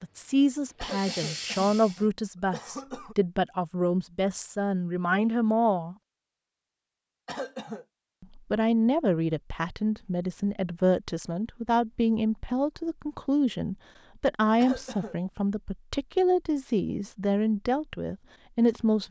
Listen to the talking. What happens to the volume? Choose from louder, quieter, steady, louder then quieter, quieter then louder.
steady.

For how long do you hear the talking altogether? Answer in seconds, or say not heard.
17 s.